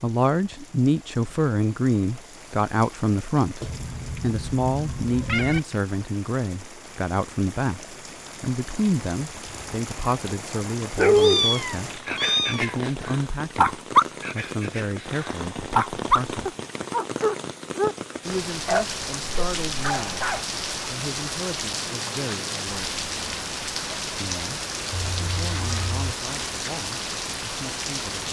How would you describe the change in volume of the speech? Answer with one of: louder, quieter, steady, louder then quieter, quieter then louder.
quieter.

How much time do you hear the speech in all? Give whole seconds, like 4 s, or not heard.
25 s.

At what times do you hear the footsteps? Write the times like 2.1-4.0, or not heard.
not heard.